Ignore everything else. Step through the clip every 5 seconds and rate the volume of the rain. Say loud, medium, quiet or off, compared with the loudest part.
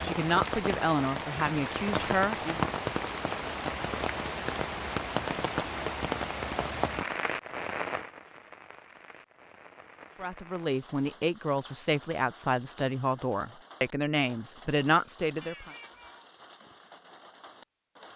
loud, loud, quiet, quiet.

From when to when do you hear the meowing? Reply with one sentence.
The meowing can be heard from 15.4 to 16.3 s.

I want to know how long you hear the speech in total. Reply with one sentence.
The speech can be heard for 8 seconds in total.